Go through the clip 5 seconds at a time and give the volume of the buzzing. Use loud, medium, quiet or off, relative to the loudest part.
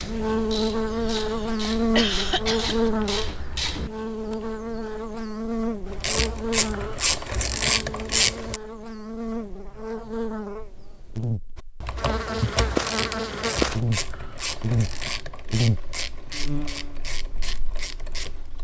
loud, medium, loud, medium.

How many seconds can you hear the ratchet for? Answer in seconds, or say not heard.
14 s.